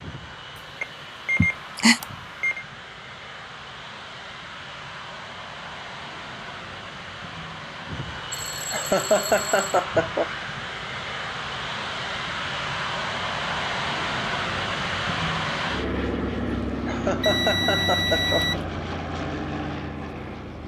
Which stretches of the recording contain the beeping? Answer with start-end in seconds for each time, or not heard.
0.6-2.6, 8.3-9.8, 17.2-18.6.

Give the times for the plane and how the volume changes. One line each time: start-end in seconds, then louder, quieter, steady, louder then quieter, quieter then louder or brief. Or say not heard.
0.0-20.6 louder.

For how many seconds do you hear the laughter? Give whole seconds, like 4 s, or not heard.
4 s.